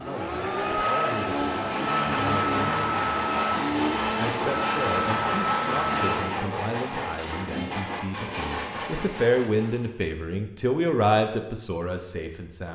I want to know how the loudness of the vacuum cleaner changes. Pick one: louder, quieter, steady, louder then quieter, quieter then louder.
steady.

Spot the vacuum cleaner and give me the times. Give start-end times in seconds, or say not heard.
0.0-6.4.